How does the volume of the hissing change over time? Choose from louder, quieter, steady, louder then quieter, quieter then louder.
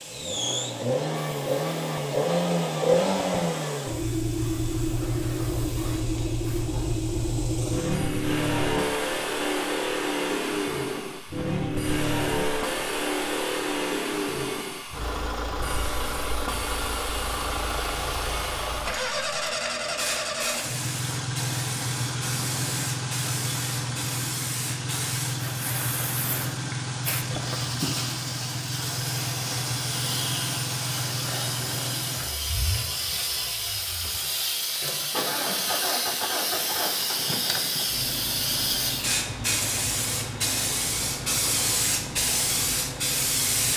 louder.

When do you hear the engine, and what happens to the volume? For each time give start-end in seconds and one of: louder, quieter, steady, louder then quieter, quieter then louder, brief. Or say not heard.
0.0-43.7 quieter.